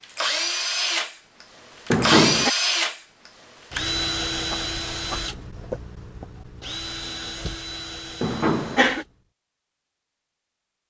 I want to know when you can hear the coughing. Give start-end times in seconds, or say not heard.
1.9-2.5, 8.2-9.1.